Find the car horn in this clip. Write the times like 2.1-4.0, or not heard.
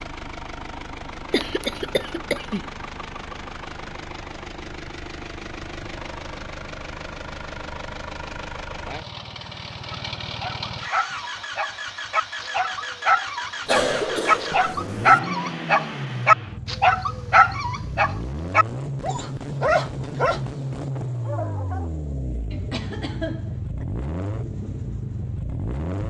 not heard.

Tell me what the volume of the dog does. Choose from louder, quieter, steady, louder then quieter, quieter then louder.
louder then quieter.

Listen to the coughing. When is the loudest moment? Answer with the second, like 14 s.
14 s.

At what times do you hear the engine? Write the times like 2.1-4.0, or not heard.
0.0-26.0.